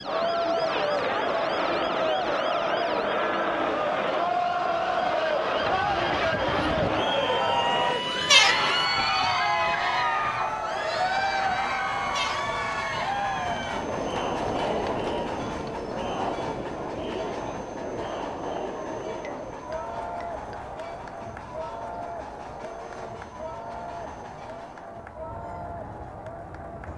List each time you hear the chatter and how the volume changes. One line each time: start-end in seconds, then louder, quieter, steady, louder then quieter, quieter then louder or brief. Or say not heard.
0.0-26.9 quieter.